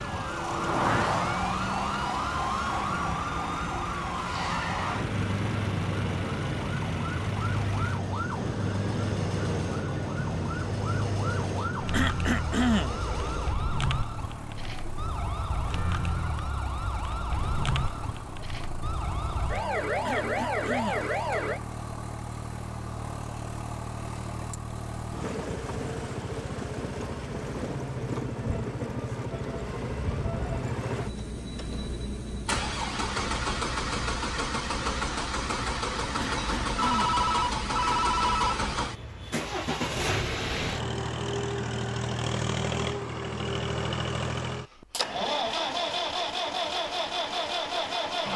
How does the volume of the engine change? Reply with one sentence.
The loudness of the engine goes up.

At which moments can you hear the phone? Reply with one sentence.
The phone can be heard from 36.4 to 38.7 s.